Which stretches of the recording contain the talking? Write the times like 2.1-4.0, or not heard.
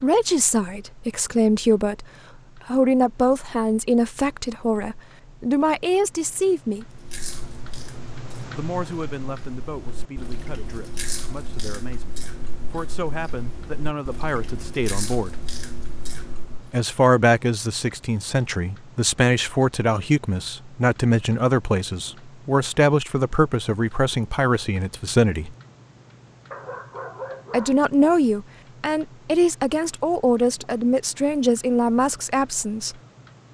0.0-2.0, 2.6-7.0, 8.6-15.3, 16.7-25.6, 27.5-33.0.